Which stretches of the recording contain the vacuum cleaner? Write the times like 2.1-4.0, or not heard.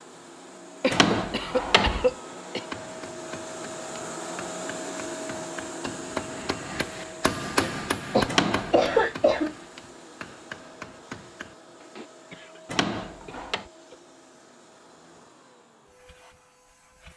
0.0-17.1.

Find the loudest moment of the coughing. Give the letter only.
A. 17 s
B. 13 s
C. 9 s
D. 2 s
C.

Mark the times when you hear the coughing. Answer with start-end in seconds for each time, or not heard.
0.8-2.6, 7.5-9.6, 12.3-14.0.